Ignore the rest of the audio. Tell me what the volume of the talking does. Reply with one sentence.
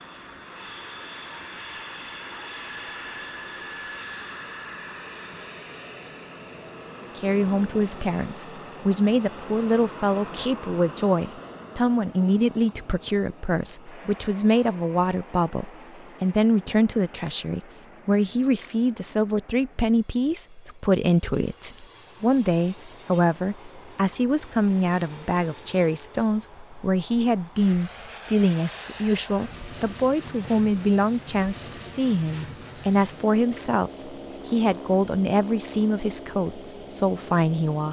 The volume of the talking stays about the same.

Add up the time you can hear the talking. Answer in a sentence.
You can hear the talking for 31 seconds altogether.